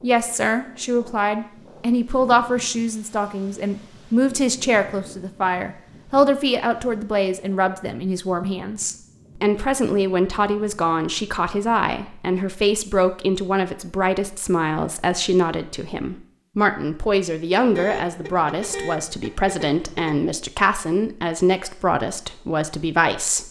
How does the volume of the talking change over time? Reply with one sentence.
The volume of the talking stays about the same.